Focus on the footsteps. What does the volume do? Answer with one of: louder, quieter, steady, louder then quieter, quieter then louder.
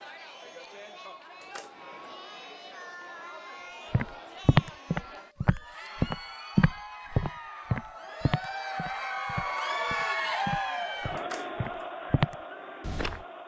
quieter then louder.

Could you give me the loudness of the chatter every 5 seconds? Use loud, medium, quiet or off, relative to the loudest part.
medium, loud, loud.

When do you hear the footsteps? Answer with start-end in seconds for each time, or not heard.
3.9-13.2.